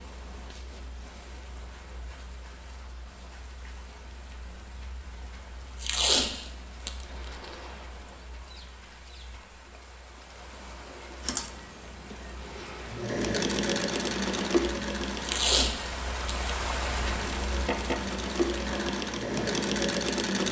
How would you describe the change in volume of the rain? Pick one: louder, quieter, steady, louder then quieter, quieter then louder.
louder.